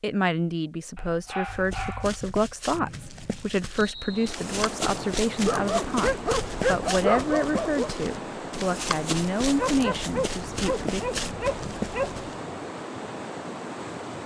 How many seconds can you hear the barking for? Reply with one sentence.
The barking can be heard for 7 seconds in total.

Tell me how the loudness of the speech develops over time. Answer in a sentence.
The volume of the speech stays about the same.